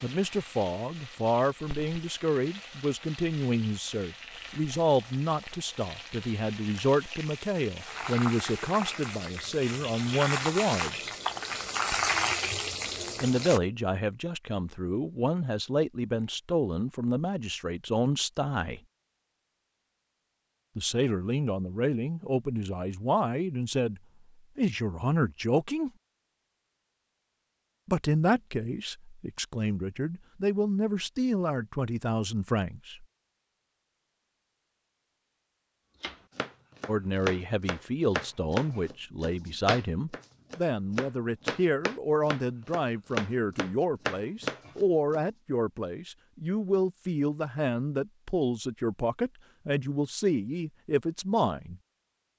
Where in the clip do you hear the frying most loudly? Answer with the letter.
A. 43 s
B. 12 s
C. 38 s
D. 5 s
B.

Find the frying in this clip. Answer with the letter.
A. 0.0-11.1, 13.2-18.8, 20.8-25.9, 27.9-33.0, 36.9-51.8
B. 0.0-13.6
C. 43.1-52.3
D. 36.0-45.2
B.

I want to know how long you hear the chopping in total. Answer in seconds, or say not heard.
9 s.